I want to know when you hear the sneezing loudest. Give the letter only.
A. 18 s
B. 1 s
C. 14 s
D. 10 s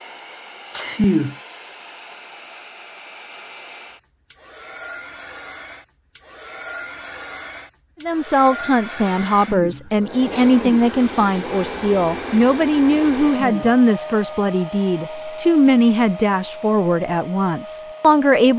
B.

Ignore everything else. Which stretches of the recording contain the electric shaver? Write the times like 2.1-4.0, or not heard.
not heard.